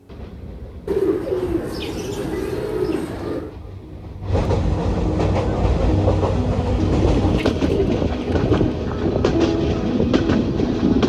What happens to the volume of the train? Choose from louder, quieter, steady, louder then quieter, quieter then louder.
louder.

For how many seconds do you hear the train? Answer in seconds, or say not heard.
11 s.